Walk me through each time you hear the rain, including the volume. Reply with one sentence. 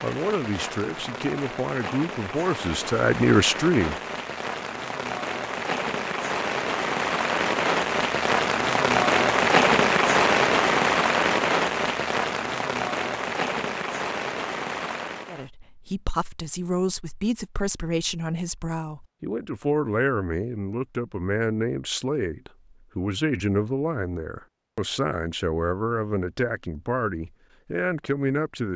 The rain can be heard from 0.0 to 15.5 s, getting louder then quieter.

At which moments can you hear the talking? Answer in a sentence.
You can hear the talking from 0.0 to 4.0 s and from 15.3 to 28.7 s.